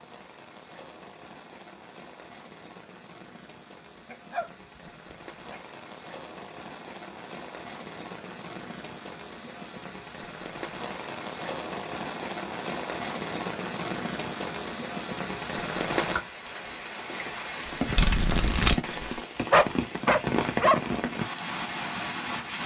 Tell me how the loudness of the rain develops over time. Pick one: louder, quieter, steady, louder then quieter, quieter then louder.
louder.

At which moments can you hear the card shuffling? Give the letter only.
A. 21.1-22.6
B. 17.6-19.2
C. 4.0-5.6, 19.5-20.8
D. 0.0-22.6
B.